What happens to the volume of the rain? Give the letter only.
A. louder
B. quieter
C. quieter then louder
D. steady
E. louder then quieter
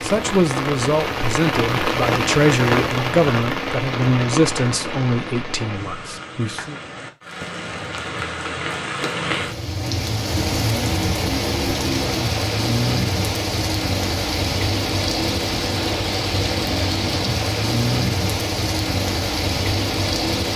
C.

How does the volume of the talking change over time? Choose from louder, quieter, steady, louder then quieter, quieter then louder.
quieter.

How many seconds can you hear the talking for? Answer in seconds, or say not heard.
7 s.